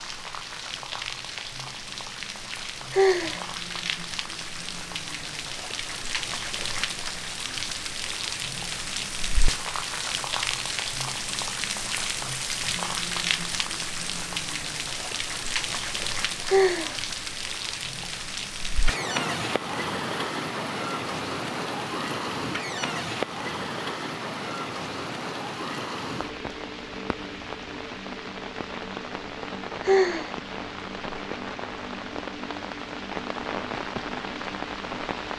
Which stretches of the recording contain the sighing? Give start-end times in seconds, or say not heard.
2.9-3.4, 16.4-16.9, 29.9-30.4.